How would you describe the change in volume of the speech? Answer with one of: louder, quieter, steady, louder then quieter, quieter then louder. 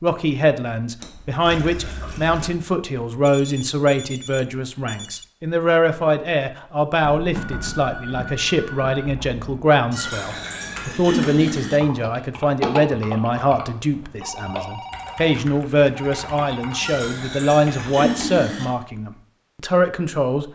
steady.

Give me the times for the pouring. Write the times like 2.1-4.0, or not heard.
1.0-2.5, 9.9-11.8, 16.8-18.6.